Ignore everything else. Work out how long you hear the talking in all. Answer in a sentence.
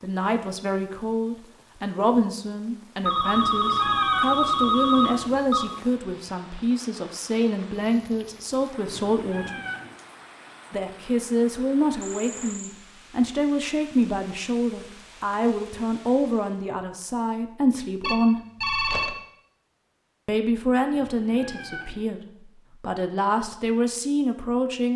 The talking can be heard for 21 seconds in total.